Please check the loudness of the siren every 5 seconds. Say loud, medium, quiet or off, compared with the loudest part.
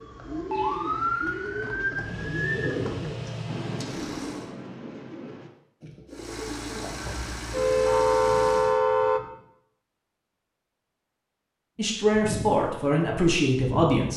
medium, loud, off.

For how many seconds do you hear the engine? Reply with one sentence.
You can hear the engine for 5 seconds altogether.